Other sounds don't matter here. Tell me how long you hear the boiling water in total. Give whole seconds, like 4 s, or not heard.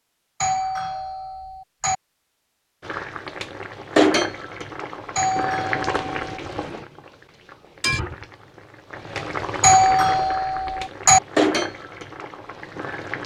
10 s.